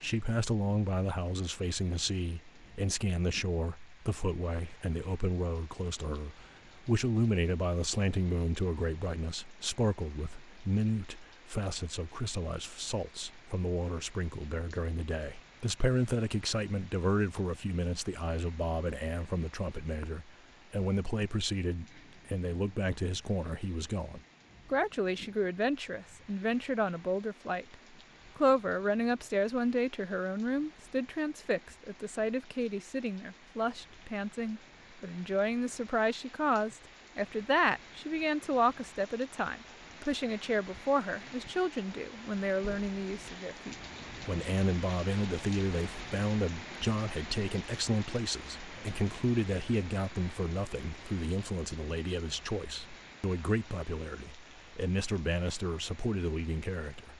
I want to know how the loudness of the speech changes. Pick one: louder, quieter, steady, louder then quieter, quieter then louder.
steady.